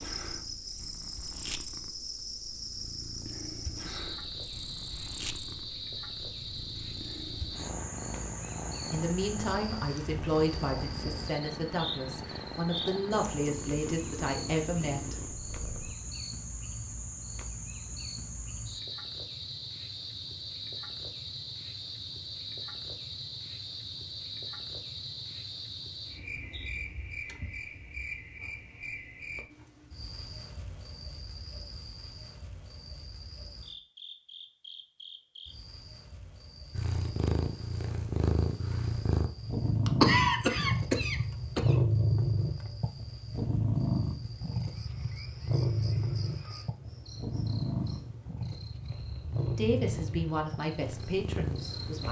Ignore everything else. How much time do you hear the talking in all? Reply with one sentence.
You can hear the talking for 9 seconds altogether.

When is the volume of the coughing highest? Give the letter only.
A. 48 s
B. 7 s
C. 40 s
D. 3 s
C.